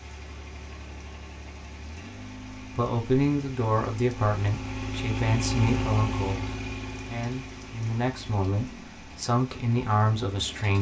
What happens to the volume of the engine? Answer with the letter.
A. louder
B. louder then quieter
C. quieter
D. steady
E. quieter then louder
B.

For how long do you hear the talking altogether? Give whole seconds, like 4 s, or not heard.
8 s.